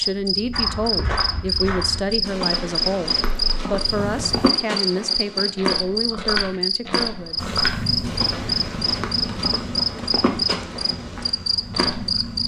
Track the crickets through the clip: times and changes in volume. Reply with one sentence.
The crickets can be heard from 0.0 to 12.4 s, at a steady volume.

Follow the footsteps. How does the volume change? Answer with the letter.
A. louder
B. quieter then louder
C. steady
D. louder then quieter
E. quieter
C.